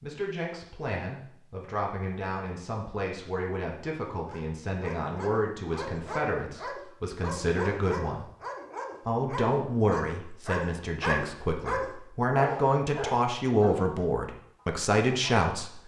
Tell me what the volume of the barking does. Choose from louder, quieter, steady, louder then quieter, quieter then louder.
louder.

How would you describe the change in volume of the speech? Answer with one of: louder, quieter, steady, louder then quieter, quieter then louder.
louder.